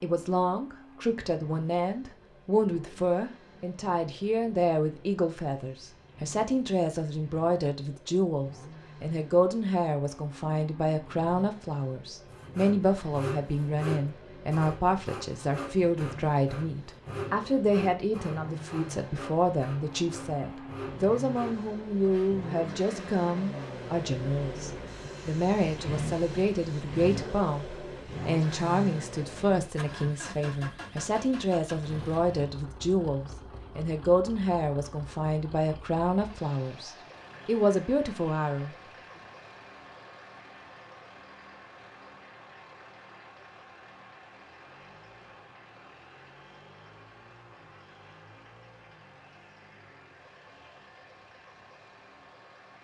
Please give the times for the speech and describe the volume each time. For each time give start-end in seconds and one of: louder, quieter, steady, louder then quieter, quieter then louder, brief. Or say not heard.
0.0-38.8 steady.